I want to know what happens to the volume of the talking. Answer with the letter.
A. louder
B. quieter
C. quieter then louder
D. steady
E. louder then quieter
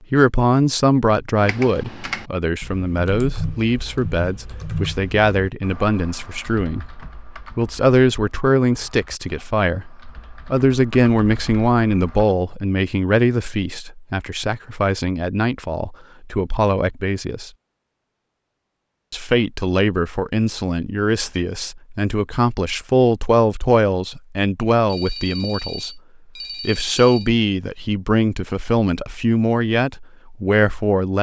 D.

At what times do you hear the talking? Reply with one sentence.
You can hear the talking from 0.1 to 17.5 s, from 19.1 to 26.0 s and from 26.6 to 31.1 s.